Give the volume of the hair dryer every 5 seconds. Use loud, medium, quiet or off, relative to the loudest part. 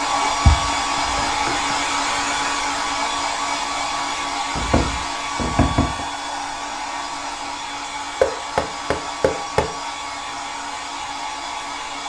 loud, medium, medium.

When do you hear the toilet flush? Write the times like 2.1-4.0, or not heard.
not heard.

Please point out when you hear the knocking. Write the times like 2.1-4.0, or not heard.
0.2-1.8, 4.5-6.0, 8.2-9.8.